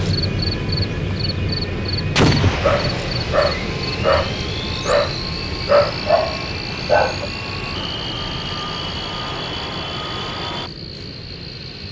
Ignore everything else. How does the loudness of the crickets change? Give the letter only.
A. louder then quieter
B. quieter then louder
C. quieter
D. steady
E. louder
C.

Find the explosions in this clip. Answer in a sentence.
The explosions can be heard from 2.1 to 3.0 s.